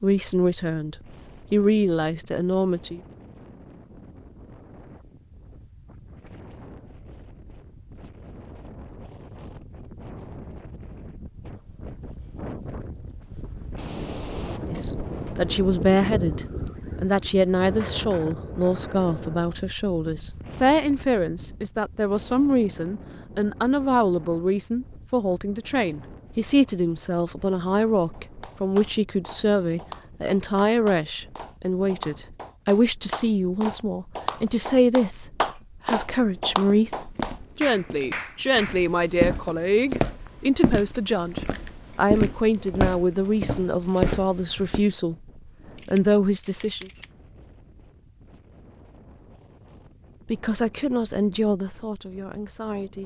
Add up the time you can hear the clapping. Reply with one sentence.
The clapping can be heard for 11 seconds in total.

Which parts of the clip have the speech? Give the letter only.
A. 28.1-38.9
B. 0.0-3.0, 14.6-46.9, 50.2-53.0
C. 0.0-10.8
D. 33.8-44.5
B.